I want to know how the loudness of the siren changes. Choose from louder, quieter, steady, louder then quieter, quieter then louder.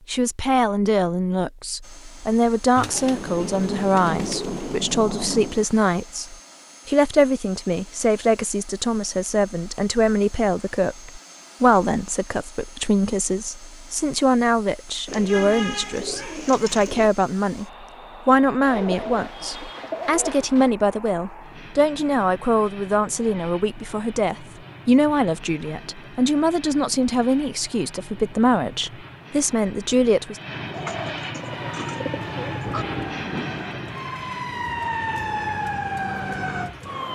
louder.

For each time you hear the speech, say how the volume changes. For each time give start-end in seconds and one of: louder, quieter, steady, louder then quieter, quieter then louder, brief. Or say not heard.
0.1-30.4 steady.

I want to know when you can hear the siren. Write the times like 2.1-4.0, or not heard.
31.4-37.1.